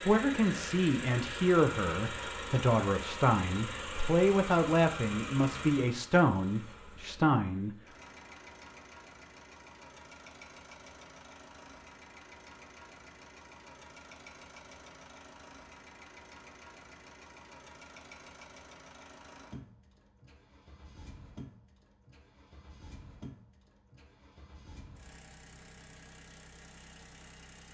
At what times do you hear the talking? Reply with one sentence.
The talking can be heard from 0.0 to 7.7 s.